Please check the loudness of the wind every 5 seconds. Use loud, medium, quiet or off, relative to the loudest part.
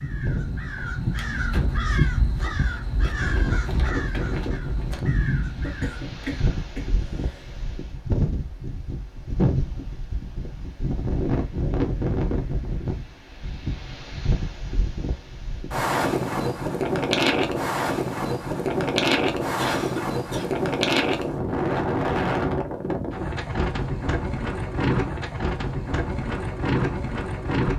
medium, medium, medium, loud, loud, loud.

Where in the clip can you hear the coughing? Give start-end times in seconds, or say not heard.
5.6-7.5, 19.6-20.5.